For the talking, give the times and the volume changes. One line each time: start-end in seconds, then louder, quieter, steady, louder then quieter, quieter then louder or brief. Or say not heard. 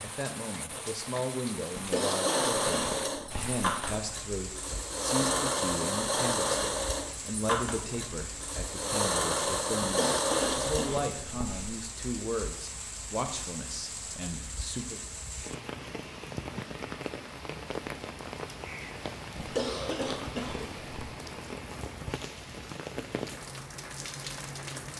0.0-15.0 steady.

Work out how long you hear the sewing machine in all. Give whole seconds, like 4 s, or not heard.
9 s.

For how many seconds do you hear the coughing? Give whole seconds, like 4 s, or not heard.
5 s.